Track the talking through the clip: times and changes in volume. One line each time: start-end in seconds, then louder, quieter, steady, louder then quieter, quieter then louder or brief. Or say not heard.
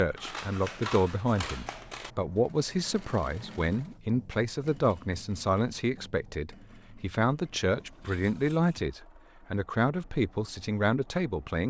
0.0-11.6 steady.